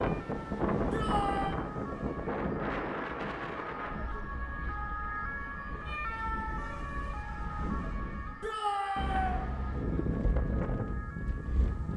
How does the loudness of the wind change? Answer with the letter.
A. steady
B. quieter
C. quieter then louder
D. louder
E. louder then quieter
C.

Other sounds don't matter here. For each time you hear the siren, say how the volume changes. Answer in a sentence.
The siren can be heard from 0.0 to 11.9 s, getting louder then quieter.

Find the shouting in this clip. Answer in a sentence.
You can hear the shouting from 0.9 to 1.6 s and from 8.4 to 9.4 s.